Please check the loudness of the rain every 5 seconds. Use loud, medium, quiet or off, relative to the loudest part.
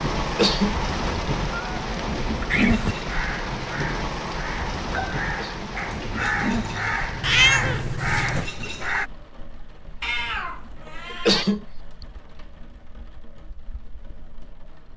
loud, medium, quiet.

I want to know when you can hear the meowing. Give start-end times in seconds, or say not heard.
1.5-3.0, 7.2-8.4, 10.0-11.4.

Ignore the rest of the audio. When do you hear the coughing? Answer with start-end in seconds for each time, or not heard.
0.2-0.8, 5.2-5.7, 11.1-11.6.